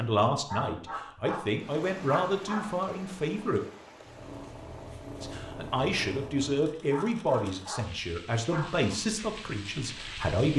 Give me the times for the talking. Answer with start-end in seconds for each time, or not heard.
0.0-3.6, 5.2-10.5.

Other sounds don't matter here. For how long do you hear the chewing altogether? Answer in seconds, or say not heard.
not heard.